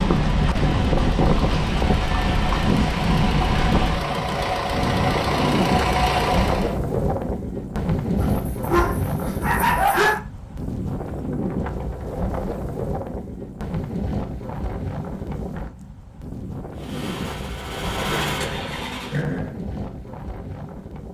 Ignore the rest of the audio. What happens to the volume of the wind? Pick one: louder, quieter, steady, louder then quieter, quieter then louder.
quieter.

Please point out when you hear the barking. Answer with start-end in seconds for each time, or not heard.
8.2-10.2.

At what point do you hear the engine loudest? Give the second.
6 s.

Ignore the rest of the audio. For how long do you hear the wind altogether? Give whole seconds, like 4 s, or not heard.
21 s.